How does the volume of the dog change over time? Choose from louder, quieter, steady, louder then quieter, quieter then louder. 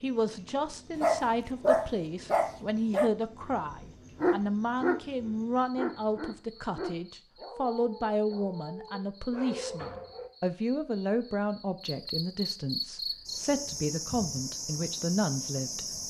quieter.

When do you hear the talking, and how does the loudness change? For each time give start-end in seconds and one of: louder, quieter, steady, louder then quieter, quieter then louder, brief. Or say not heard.
0.0-16.0 steady.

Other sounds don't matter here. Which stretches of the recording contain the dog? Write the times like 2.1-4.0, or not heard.
0.9-10.3.